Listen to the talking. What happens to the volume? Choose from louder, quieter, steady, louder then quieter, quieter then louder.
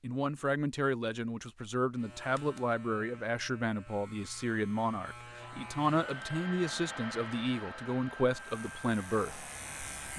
steady.